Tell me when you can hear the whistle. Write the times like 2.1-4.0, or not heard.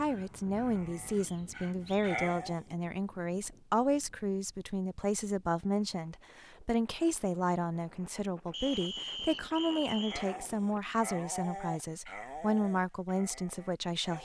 1.2-2.1, 8.5-10.2.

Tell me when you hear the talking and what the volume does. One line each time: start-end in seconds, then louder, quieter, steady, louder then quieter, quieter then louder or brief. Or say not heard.
0.0-14.1 steady.